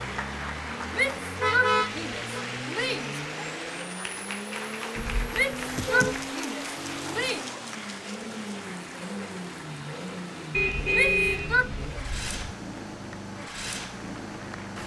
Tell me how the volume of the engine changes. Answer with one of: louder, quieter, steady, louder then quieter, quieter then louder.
steady.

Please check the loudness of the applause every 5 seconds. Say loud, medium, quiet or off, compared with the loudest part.
loud, loud, medium.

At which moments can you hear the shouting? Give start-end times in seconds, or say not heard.
0.9-3.2, 5.3-7.5, 10.9-11.7.